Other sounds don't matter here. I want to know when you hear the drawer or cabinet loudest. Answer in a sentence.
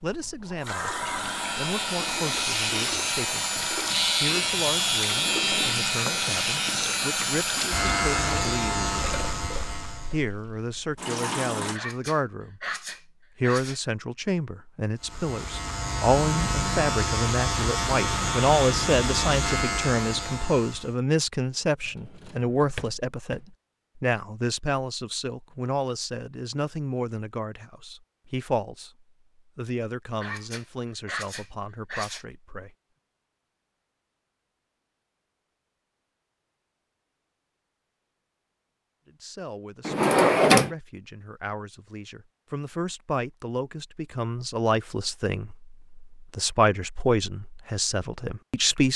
The volume of the drawer or cabinet peaks at 40 seconds.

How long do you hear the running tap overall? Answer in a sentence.
You can hear the running tap for 12 seconds altogether.